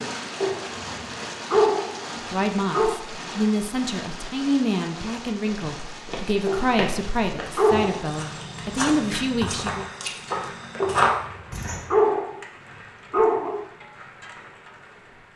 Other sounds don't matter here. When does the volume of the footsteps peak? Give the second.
11 s.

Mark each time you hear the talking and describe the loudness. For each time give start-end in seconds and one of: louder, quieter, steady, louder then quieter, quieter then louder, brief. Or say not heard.
2.2-9.8 steady.